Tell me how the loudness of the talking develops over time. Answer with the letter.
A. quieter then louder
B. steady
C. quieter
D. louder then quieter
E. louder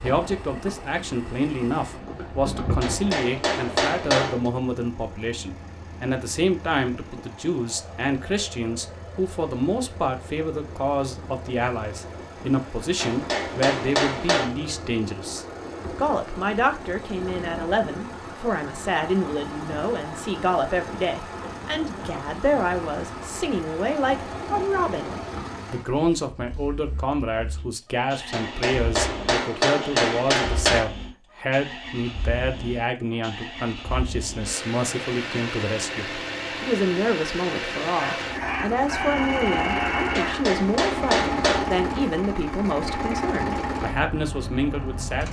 B.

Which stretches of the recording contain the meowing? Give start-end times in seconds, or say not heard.
not heard.